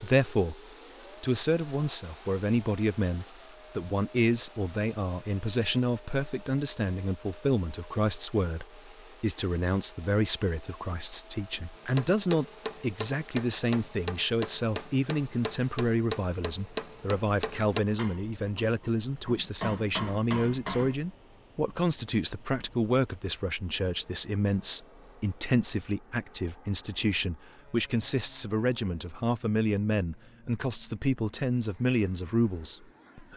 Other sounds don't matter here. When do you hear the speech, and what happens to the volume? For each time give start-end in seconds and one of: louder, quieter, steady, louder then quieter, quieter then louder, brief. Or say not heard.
0.0-0.6 brief
1.2-33.3 steady.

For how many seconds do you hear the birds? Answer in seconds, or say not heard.
not heard.